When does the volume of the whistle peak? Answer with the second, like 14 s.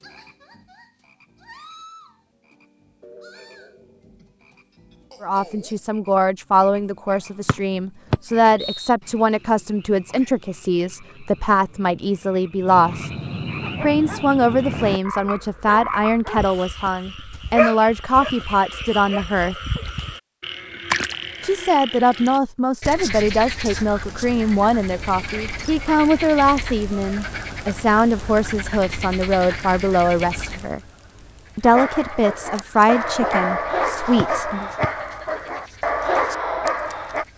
8 s.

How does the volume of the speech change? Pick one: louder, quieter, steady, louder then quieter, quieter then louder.
steady.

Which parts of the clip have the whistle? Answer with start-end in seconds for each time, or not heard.
7.5-8.9, 34.1-34.9.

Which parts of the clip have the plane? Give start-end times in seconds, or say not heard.
not heard.